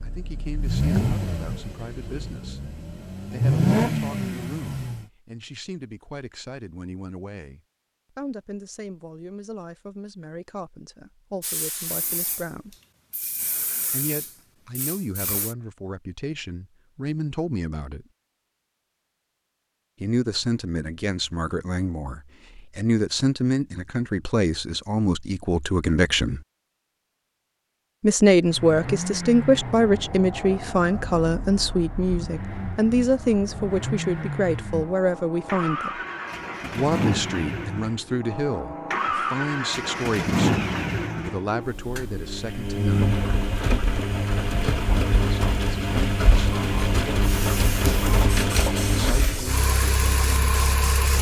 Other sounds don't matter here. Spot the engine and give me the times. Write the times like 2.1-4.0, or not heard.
0.0-5.0, 28.4-51.1.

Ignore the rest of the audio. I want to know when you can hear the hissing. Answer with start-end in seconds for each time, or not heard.
11.4-15.6, 46.5-51.1.